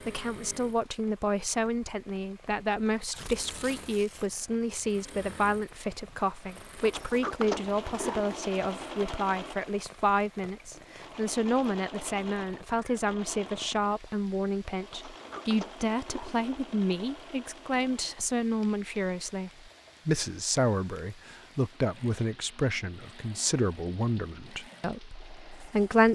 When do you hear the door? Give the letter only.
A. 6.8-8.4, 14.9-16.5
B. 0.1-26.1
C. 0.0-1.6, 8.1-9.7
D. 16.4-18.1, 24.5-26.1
A.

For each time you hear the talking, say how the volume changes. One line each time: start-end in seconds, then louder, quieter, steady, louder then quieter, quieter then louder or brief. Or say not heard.
0.1-26.1 steady.